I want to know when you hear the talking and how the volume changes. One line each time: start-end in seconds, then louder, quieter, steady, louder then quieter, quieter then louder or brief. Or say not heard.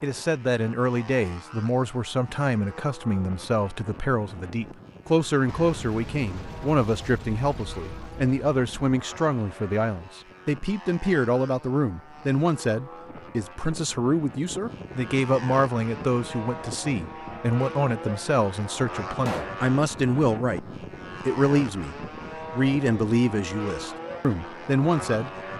0.0-25.3 steady.